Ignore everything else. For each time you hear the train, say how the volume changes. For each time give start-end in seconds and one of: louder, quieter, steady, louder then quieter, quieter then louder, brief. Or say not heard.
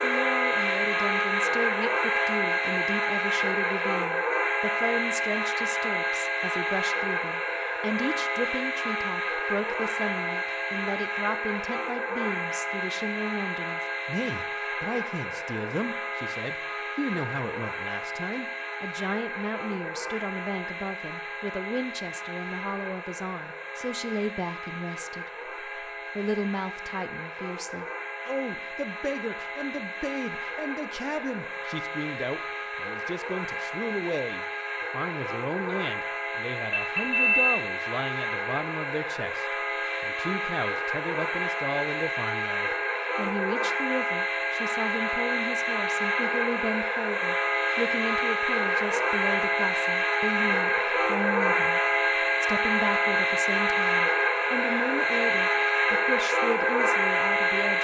0.0-57.8 quieter then louder.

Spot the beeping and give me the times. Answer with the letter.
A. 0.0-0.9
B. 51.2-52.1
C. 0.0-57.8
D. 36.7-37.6
D.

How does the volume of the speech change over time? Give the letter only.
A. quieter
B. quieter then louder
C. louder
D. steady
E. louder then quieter
D.